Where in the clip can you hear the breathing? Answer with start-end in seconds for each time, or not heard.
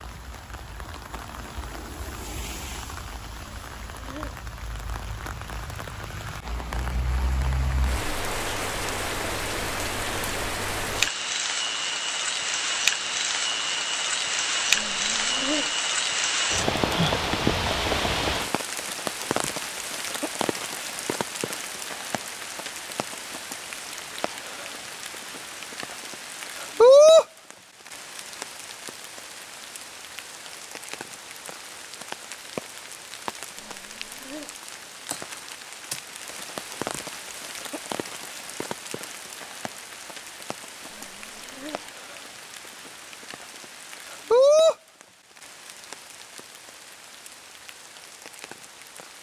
3.4-4.4, 14.7-15.7, 33.5-34.5, 40.9-41.9.